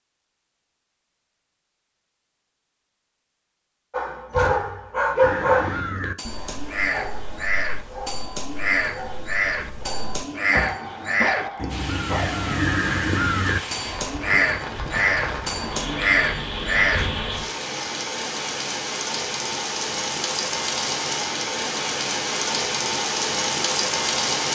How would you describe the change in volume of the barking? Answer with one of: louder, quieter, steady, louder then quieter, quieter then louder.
quieter then louder.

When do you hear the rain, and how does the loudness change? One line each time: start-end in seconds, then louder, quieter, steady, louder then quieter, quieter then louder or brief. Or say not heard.
11.7-24.5 louder.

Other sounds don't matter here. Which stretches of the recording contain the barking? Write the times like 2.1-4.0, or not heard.
3.9-12.6.